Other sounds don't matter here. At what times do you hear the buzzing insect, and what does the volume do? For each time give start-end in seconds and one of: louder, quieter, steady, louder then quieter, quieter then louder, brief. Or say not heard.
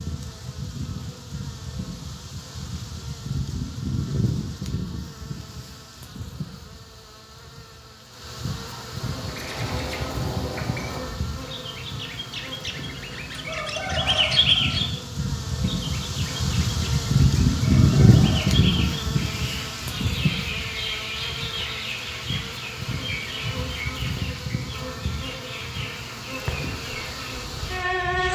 0.0-28.3 louder then quieter.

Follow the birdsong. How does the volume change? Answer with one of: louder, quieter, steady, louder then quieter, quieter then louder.
louder then quieter.